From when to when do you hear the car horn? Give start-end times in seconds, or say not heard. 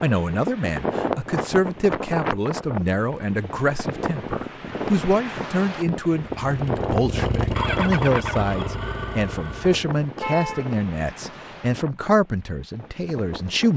10.2-10.8.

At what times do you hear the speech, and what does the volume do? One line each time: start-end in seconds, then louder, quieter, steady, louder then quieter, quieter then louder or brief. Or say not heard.
0.0-13.7 steady.